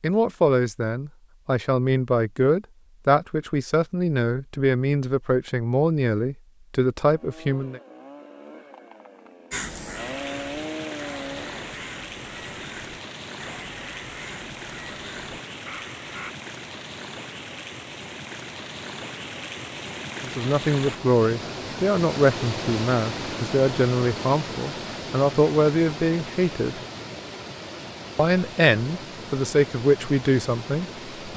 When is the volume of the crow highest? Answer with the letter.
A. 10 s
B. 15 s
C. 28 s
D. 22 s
A.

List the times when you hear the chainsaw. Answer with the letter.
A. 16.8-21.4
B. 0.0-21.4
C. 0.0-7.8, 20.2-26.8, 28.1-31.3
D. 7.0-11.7
D.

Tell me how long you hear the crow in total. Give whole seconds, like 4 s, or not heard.
7 s.